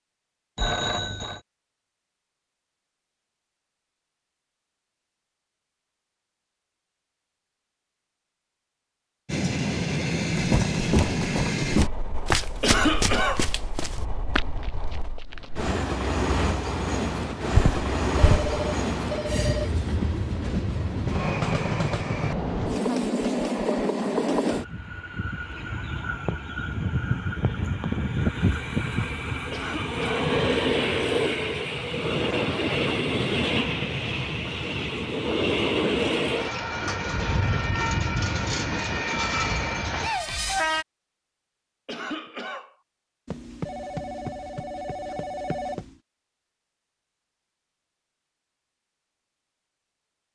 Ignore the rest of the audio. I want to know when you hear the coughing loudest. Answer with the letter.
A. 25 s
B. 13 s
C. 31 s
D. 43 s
B.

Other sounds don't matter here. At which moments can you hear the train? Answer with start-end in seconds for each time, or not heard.
9.2-40.9.